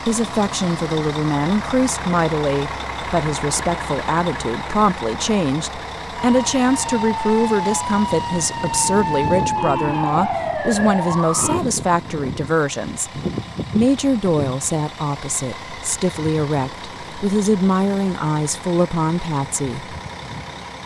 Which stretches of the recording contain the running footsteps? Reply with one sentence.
You can't hear the running footsteps here.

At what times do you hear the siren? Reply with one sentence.
You can hear the siren from 6.2 to 11.6 s.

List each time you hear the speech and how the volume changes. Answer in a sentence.
The speech can be heard from 0.1 to 19.9 s, at a steady volume.